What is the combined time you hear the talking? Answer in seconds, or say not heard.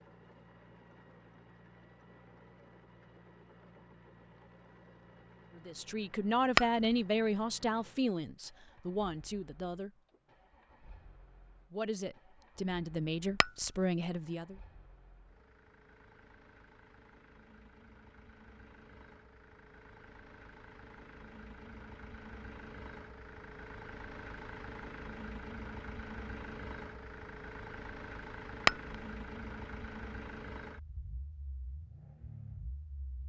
7 s.